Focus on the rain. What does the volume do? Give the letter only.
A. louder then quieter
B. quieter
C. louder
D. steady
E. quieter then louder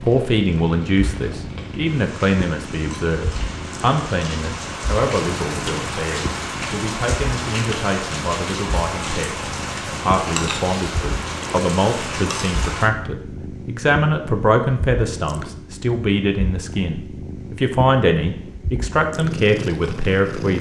C.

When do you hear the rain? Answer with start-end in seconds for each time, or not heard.
0.0-12.9.